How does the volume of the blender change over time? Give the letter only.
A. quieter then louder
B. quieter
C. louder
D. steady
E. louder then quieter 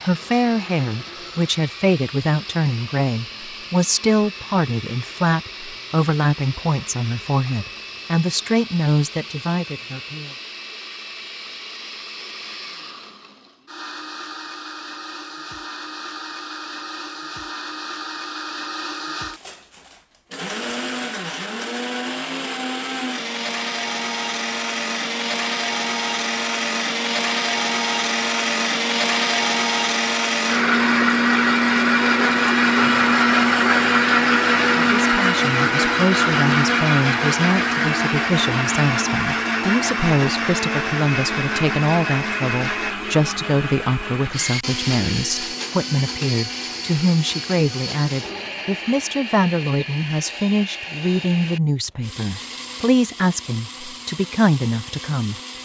E.